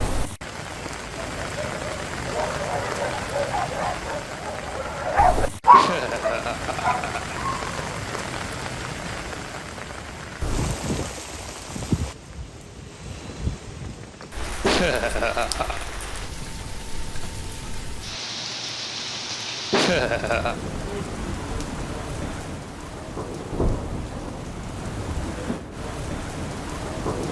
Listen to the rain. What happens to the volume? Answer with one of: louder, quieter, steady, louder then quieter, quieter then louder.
steady.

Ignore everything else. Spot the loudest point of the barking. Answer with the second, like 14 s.
6 s.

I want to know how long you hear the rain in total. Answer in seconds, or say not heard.
27 s.